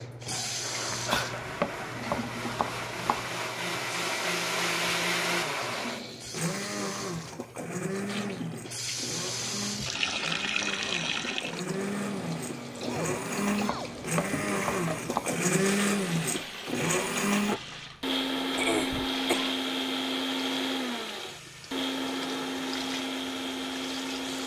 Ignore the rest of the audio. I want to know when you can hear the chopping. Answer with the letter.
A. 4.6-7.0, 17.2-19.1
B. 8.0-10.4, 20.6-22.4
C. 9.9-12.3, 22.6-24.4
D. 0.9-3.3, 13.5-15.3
D.